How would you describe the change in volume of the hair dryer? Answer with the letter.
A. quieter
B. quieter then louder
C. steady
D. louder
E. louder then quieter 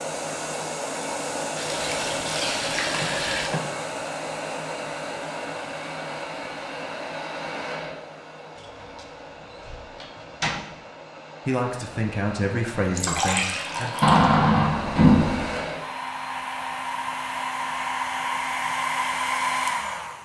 B.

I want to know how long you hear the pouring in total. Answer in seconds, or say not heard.
3 s.